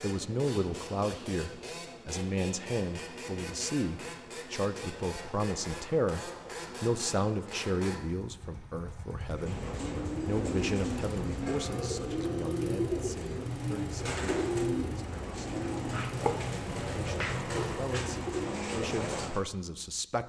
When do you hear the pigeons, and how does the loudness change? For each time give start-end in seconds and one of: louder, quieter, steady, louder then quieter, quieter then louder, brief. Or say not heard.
9.3-19.4 steady.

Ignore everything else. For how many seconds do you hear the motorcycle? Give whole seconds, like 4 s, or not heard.
18 s.